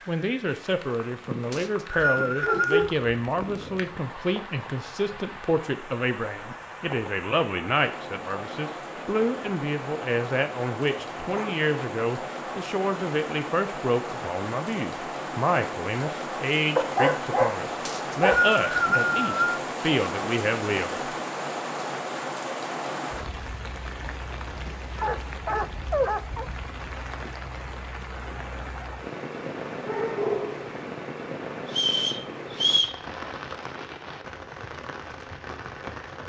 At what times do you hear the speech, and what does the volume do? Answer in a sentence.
You can hear the speech from 0.1 to 21.1 s, at a steady volume.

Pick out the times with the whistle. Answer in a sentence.
The whistle can be heard from 1.5 to 2.9 s, from 17.9 to 19.6 s and from 31.8 to 33.0 s.